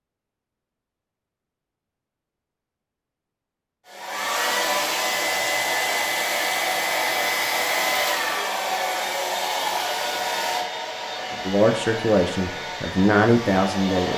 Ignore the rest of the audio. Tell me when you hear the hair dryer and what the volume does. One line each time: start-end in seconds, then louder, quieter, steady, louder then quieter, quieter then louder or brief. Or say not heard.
3.9-14.1 quieter.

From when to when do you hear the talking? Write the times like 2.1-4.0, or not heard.
11.4-14.1.